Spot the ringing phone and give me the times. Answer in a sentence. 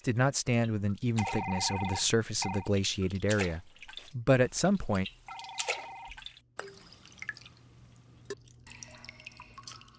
You can hear the ringing phone from 1.1 to 2.7 s and from 5.2 to 6.3 s.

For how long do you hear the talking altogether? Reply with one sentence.
You can hear the talking for 5 seconds altogether.